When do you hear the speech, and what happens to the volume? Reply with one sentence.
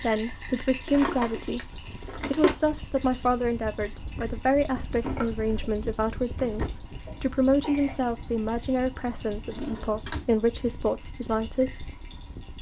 The speech can be heard from 0.0 to 11.9 s, at a steady volume.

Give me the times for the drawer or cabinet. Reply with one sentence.
The drawer or cabinet can be heard from 0.8 to 2.5 s, from 4.8 to 6.7 s and from 9.3 to 10.2 s.